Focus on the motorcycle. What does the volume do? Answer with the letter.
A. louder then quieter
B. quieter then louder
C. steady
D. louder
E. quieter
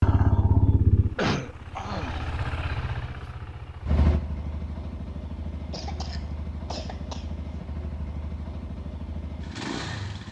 E.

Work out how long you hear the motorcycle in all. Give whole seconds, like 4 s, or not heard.
10 s.